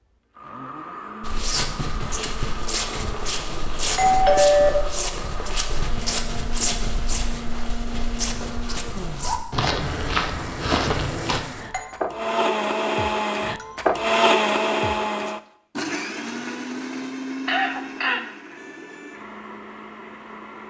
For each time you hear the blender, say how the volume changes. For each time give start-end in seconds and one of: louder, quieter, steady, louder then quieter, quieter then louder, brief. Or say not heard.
0.3-20.6 louder then quieter.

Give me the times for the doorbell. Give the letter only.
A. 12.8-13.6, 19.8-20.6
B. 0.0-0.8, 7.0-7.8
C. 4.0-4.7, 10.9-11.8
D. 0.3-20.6
C.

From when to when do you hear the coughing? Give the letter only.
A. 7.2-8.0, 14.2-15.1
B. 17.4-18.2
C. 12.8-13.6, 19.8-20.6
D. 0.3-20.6
B.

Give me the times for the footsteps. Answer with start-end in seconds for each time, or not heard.
1.2-11.4.